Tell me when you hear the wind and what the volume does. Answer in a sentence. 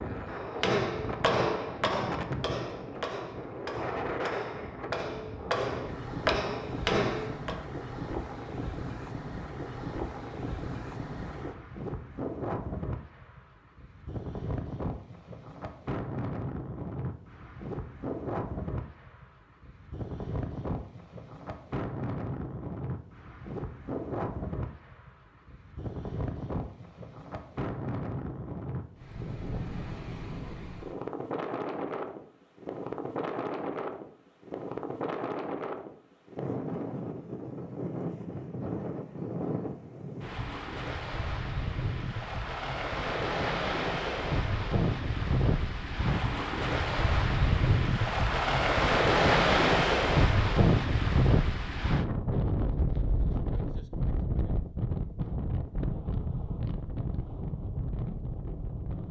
You can hear the wind from 0.0 to 59.0 s, getting louder.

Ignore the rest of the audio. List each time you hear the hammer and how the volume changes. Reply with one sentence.
You can hear the hammer from 0.3 to 7.5 s, getting quieter then louder.